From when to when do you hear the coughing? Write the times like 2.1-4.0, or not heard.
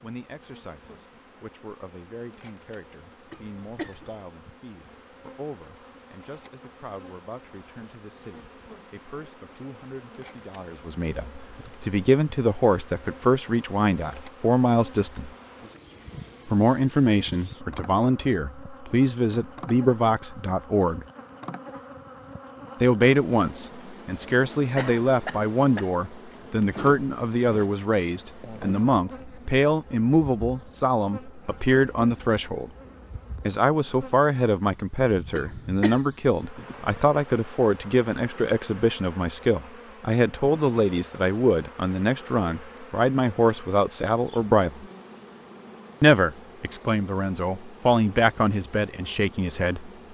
3.3-4.0, 24.8-25.9, 35.4-36.1.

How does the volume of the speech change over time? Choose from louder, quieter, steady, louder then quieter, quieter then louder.
louder.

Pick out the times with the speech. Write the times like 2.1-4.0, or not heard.
0.0-15.3, 16.4-21.1, 22.8-32.7, 33.5-44.9, 46.0-49.9.